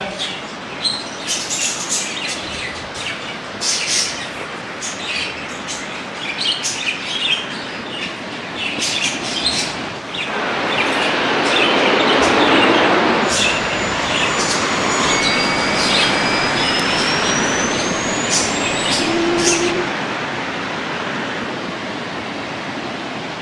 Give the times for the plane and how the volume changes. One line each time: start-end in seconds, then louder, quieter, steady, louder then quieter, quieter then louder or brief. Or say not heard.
10.2-19.9 quieter.